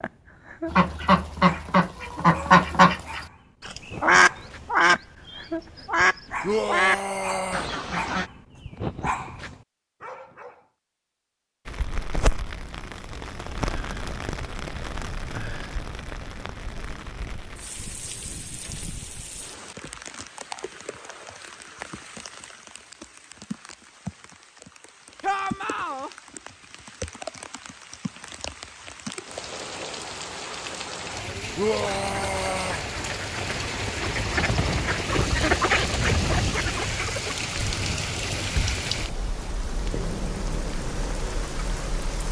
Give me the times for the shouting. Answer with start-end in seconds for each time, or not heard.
6.4-7.7, 25.2-26.1, 31.6-32.9.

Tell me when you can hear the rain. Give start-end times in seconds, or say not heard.
11.7-42.2.